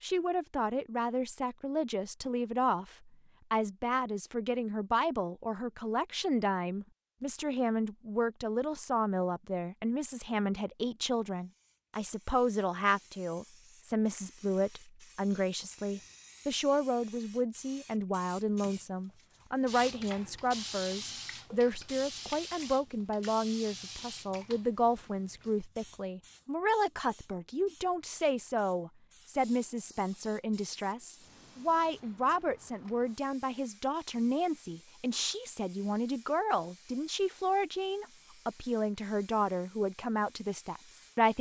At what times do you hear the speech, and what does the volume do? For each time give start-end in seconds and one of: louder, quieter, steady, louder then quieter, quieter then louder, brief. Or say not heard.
0.0-41.3 steady.